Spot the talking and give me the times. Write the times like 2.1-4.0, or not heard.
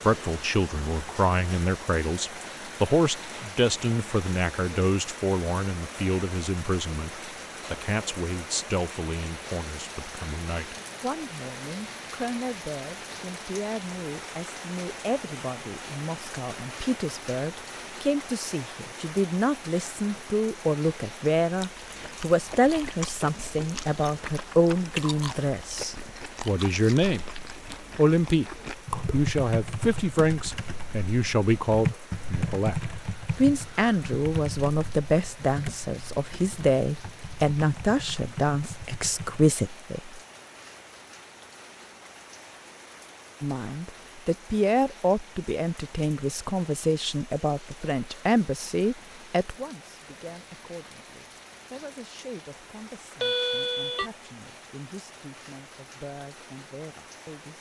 0.0-27.2, 27.9-28.5, 29.1-40.2, 43.4-57.5.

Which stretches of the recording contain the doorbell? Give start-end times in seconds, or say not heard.
53.2-54.1.